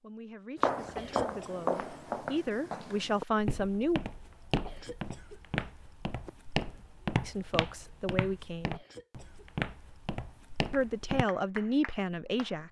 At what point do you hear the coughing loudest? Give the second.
1 s.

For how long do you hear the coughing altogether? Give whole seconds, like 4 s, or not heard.
3 s.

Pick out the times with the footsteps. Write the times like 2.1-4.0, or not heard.
0.6-11.2.